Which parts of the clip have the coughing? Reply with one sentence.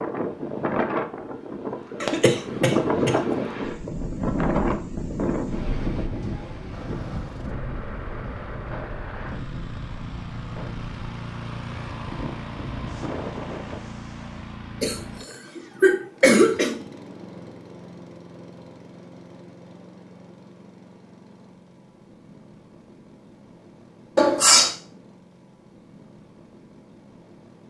The coughing can be heard from 2.0 to 3.1 s, from 14.8 to 16.8 s and from 24.1 to 24.7 s.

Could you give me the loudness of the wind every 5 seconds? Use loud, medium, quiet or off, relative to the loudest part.
loud, medium, medium, off, off, off.